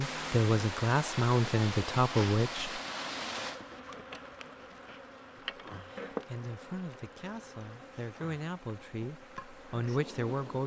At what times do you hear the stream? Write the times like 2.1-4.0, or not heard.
0.0-10.6.